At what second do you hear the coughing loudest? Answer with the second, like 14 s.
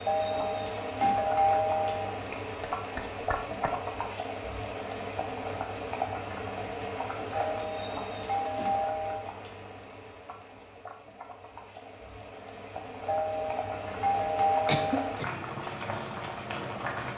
15 s.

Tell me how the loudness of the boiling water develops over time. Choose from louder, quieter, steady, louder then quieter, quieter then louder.
quieter then louder.